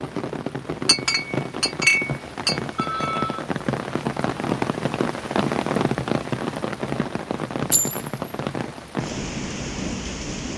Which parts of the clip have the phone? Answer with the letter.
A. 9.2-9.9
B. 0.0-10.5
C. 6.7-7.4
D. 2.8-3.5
D.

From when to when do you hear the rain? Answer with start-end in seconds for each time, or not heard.
0.0-10.5.